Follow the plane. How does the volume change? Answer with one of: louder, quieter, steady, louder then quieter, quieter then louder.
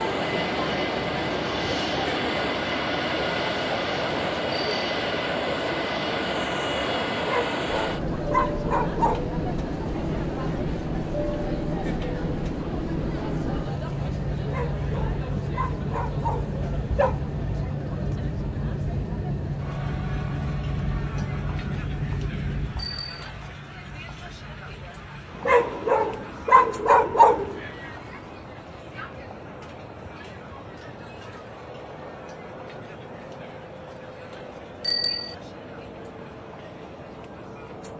quieter.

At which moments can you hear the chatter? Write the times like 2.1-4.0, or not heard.
0.0-37.9.